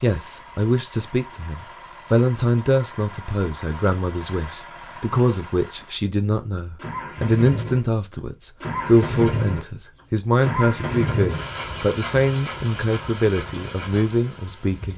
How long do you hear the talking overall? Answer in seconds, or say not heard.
15 s.